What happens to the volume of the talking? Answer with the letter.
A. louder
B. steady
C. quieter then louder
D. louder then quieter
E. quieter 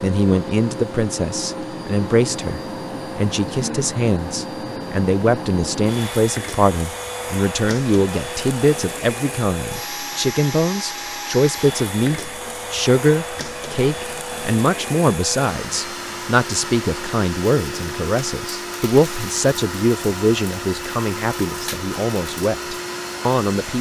B.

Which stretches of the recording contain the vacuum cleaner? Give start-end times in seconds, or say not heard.
0.0-23.7.